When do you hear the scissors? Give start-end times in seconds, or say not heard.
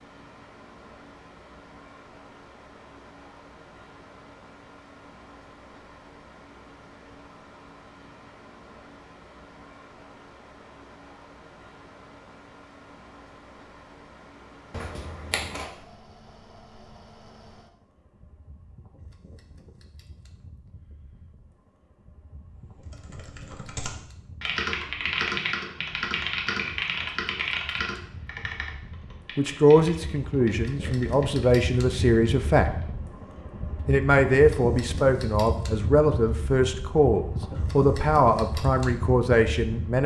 14.7-15.7.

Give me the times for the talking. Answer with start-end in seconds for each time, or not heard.
29.4-32.7, 33.9-40.0.